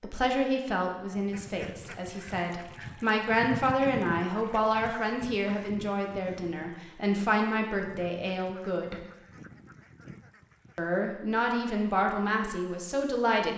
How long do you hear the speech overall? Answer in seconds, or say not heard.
12 s.